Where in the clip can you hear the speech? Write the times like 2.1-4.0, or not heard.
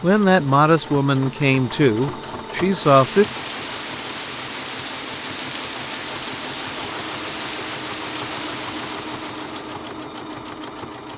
0.0-3.2.